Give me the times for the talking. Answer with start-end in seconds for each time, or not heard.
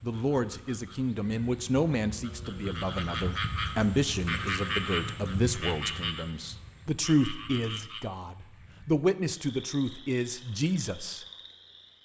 0.0-11.2.